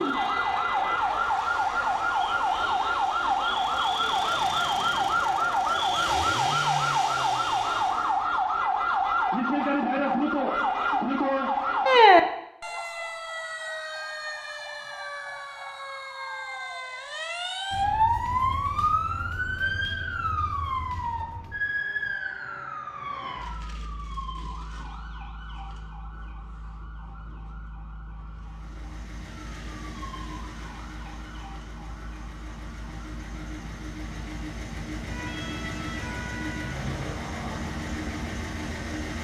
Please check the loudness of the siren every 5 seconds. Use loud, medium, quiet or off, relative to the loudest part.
loud, loud, loud, medium, medium, quiet, quiet, quiet.